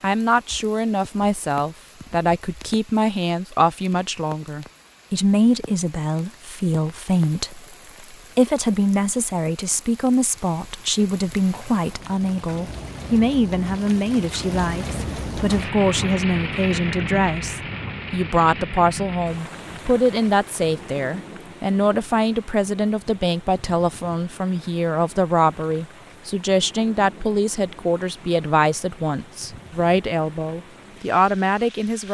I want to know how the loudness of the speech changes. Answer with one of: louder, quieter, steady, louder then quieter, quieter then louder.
steady.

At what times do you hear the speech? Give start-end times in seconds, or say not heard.
0.0-32.0.